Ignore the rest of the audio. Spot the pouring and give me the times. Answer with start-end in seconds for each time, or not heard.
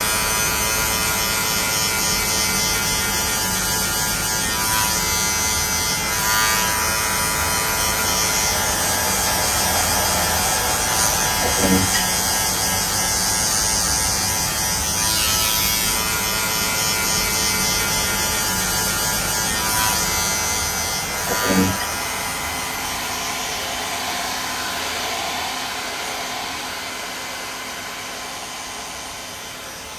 not heard.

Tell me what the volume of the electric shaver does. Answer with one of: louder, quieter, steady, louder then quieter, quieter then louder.
quieter.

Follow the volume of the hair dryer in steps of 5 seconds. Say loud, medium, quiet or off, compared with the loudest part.
medium, loud, loud, medium, loud, loud.